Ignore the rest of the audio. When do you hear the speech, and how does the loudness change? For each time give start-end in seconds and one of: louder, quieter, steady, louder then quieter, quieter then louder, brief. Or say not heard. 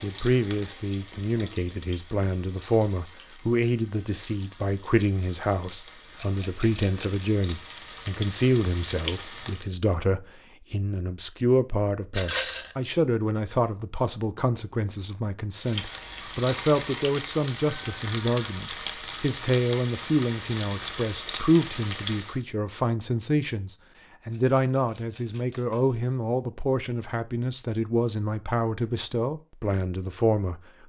0.0-30.6 steady.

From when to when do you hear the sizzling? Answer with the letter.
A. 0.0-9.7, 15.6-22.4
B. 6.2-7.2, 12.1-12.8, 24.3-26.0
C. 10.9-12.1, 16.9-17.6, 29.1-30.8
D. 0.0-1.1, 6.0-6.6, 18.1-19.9
A.